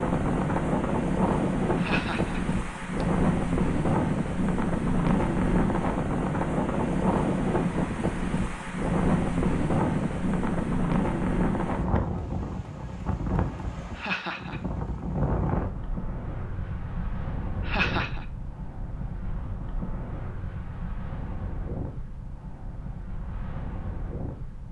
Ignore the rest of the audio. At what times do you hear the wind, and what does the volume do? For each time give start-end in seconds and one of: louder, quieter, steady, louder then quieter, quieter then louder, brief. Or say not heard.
0.0-24.6 quieter.